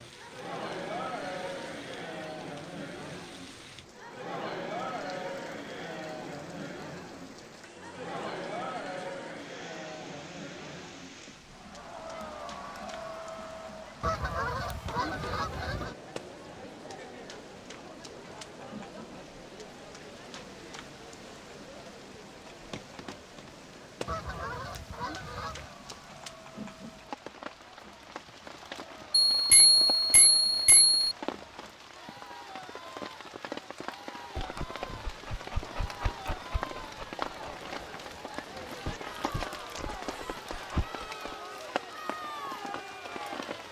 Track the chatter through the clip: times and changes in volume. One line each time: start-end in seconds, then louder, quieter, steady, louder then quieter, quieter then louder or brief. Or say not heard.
0.0-43.6 quieter then louder.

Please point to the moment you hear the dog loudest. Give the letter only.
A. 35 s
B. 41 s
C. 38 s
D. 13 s
B.